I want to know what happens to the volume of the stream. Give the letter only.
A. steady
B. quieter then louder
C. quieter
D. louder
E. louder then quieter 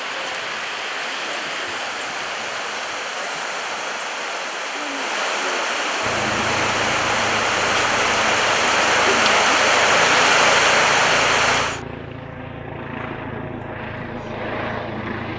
D.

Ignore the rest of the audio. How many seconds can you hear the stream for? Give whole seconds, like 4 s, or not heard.
12 s.